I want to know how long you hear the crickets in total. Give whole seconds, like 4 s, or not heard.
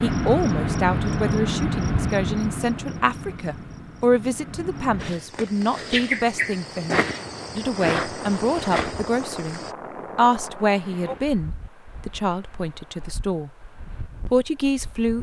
10 s.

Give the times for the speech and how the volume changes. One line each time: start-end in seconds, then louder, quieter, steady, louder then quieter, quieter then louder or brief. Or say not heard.
0.0-13.5 steady
14.2-15.1 brief.